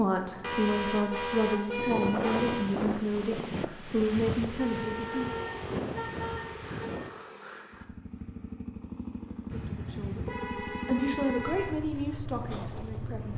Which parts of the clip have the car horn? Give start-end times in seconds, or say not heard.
0.4-2.8, 4.5-7.0, 9.5-11.8.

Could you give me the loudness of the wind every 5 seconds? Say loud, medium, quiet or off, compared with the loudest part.
loud, loud, off.